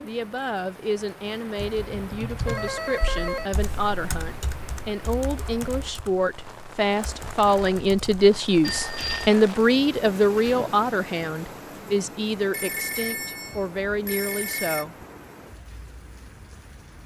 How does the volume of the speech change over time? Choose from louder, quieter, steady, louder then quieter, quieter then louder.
louder then quieter.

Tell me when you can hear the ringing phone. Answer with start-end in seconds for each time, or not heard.
2.5-3.5, 8.6-9.3, 12.5-14.8.